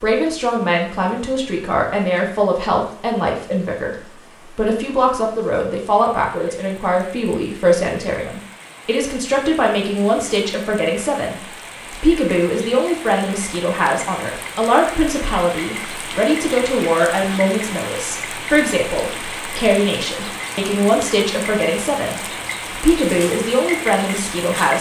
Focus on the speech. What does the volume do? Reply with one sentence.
The loudness of the speech stays about the same.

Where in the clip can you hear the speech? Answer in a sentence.
You can hear the speech from 0.0 to 24.7 s.